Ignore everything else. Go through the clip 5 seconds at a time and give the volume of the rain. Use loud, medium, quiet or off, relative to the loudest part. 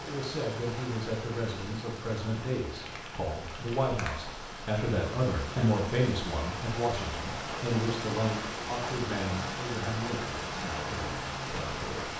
medium, loud, loud.